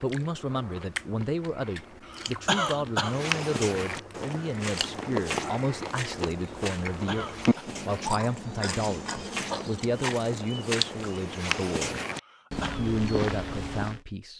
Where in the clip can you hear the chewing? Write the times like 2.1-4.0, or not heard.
0.0-11.2.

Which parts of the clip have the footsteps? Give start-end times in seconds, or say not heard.
3.0-14.0.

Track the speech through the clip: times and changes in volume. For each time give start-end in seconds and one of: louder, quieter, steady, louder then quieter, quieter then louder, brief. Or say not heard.
0.0-12.0 steady
12.8-14.3 brief.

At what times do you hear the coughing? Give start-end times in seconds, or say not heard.
2.0-3.1, 6.9-7.7, 12.2-12.8.